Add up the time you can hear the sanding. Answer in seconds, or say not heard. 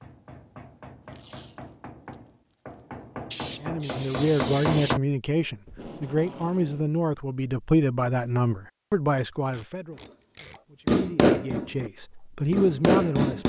2 s.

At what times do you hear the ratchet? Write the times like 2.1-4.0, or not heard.
not heard.